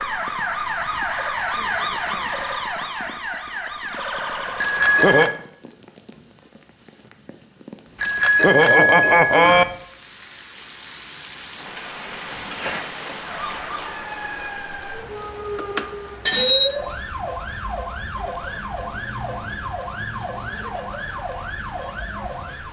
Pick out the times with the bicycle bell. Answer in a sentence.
You can hear the bicycle bell from 4.5 to 5.3 s, from 8.0 to 9.7 s and from 15.6 to 16.7 s.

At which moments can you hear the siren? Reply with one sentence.
You can hear the siren from 0.0 to 5.2 s and from 13.2 to 22.6 s.